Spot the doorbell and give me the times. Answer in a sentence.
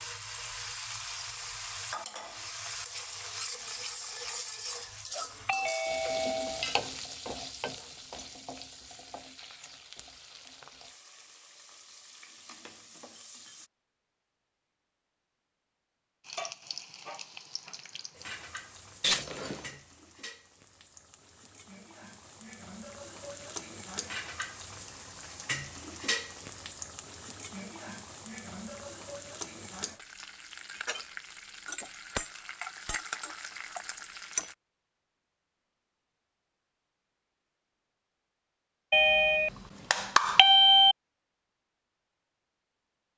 The doorbell can be heard from 5.1 to 6.8 s, from 19.0 to 19.7 s and from 38.9 to 41.0 s.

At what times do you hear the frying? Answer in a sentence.
The frying can be heard from 0.0 to 13.7 s and from 16.2 to 34.5 s.